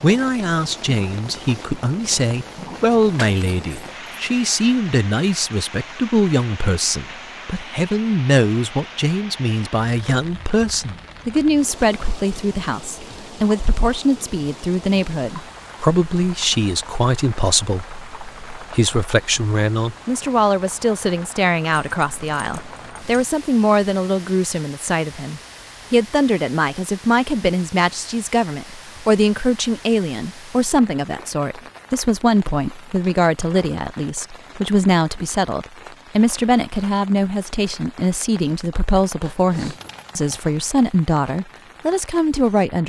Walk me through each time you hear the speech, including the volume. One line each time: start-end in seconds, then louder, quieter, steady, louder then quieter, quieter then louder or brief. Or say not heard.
0.0-42.8 steady.